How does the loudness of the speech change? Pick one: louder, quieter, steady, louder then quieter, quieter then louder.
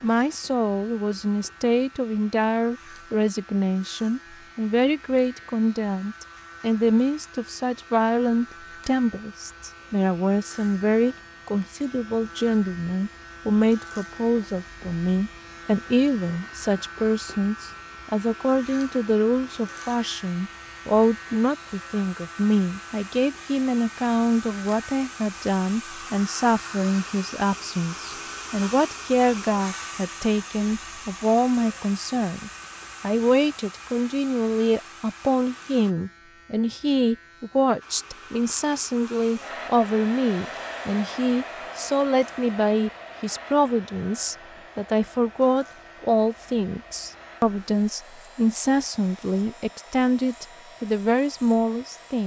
steady.